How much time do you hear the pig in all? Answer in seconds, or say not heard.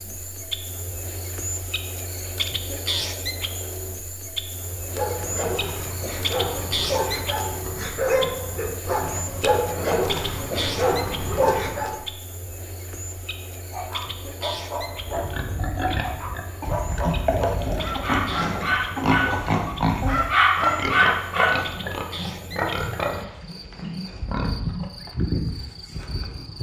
10 s.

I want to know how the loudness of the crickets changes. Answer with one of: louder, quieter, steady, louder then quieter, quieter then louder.
quieter then louder.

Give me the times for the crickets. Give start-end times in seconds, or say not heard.
0.0-26.5.